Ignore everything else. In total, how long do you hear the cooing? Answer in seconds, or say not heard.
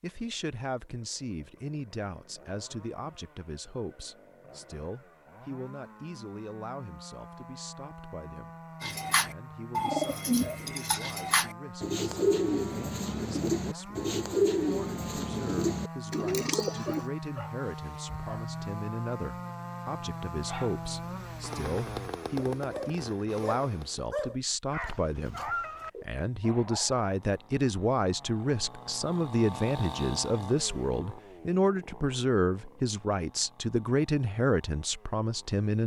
8 s.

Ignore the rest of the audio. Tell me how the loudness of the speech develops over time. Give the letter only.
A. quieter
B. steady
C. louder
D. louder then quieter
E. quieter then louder
E.